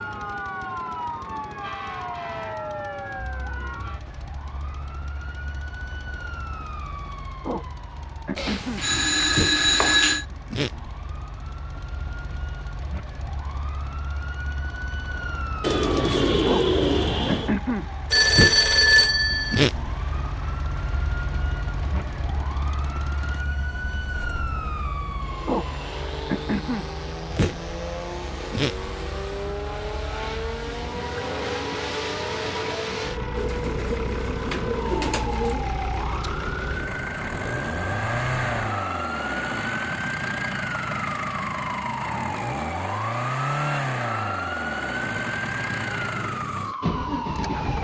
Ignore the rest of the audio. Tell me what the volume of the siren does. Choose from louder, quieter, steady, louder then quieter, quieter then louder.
steady.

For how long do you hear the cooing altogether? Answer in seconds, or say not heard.
4 s.